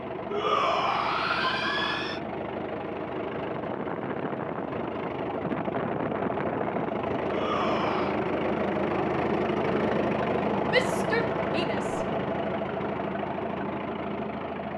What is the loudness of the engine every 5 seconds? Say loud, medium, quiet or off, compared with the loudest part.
medium, loud, loud.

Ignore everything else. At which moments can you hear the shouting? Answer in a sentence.
The shouting can be heard from 0.3 to 2.2 s, from 7.2 to 8.2 s and from 10.7 to 12.1 s.